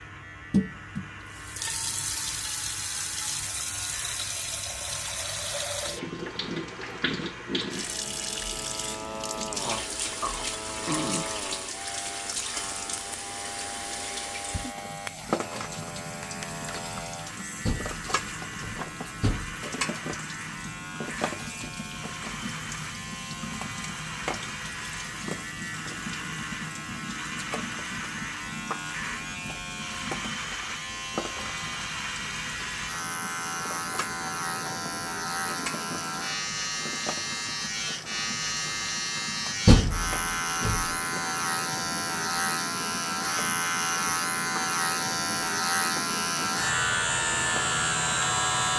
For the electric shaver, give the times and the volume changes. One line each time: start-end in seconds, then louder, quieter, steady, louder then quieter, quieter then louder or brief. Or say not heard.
0.0-48.7 louder.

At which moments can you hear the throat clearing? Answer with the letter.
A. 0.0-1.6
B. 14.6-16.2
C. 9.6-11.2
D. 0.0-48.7
C.